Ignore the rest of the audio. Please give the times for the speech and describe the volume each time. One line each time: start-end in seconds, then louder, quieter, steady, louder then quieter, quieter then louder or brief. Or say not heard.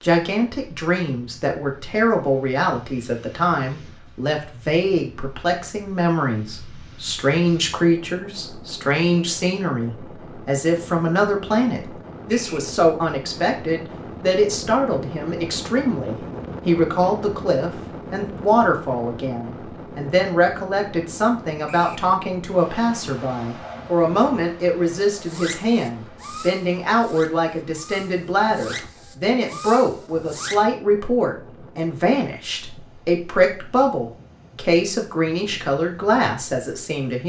0.0-37.2 steady.